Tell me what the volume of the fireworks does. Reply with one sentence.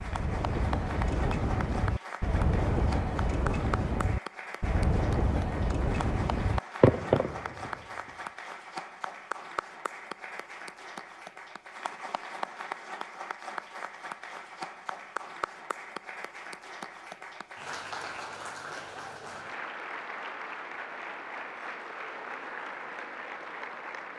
The volume of the fireworks goes up.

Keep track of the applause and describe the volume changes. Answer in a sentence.
The volume of the applause stays about the same.